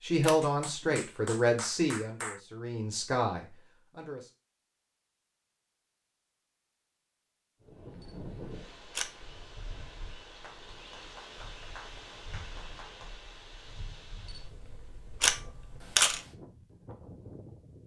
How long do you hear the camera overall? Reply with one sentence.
You can hear the camera for 4 seconds altogether.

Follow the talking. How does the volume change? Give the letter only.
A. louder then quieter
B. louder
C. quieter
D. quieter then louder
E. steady
D.